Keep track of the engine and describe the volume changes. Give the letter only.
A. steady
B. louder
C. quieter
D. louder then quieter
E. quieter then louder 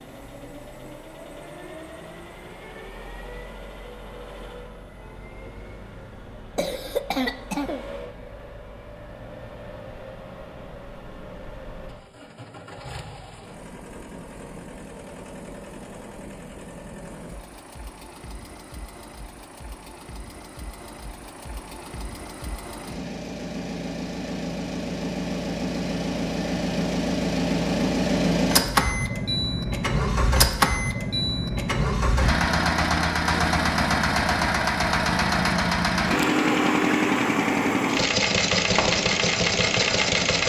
B.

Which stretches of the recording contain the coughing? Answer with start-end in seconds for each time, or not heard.
6.5-7.8.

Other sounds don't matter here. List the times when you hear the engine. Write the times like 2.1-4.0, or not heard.
0.0-40.4.